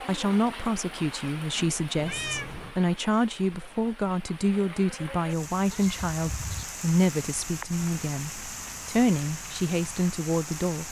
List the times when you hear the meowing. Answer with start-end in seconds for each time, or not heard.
1.9-2.8, 5.7-6.7.